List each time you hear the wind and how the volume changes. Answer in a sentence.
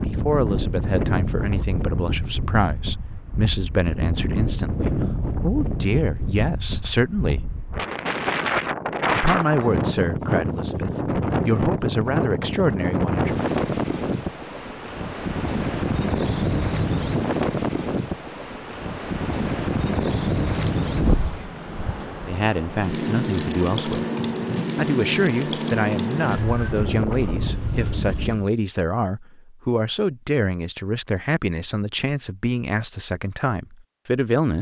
You can hear the wind from 0.0 to 28.4 s, at a steady volume.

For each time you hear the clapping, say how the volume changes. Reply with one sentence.
The clapping can't be heard in this clip.